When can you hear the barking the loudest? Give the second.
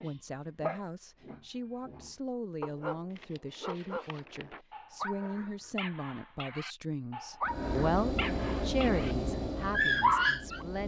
10 s.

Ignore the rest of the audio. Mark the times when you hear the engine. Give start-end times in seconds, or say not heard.
7.4-10.8.